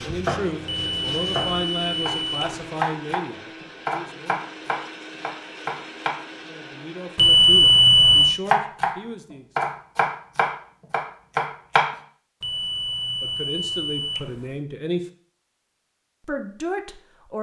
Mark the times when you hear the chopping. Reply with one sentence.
The chopping can be heard from 0.0 to 3.2 s, from 3.9 to 6.2 s, from 8.4 to 8.9 s and from 9.6 to 11.9 s.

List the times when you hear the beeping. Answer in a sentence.
You can hear the beeping from 0.7 to 2.7 s, from 7.2 to 8.4 s and from 12.4 to 14.6 s.